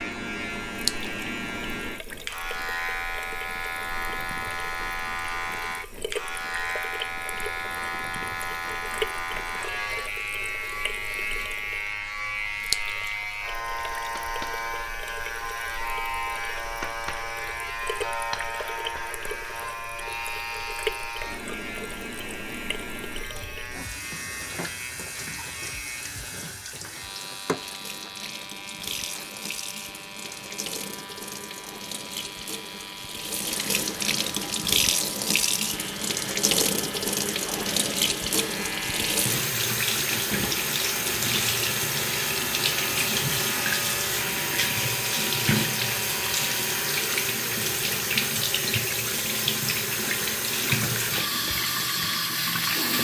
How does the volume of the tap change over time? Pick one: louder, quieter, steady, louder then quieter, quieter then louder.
louder.